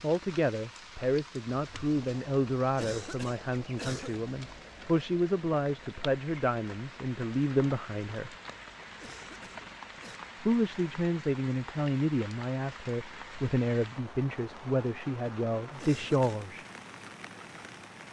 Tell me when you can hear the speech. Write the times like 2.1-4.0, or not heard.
0.0-8.3, 10.4-16.6.